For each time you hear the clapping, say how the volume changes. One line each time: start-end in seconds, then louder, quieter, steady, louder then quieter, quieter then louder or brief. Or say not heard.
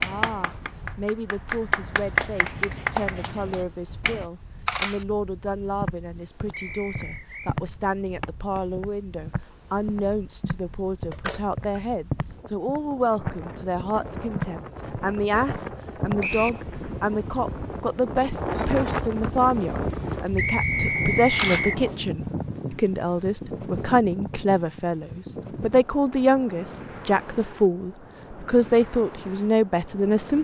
0.0-4.2 louder then quieter.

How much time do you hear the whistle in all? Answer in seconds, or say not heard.
3 s.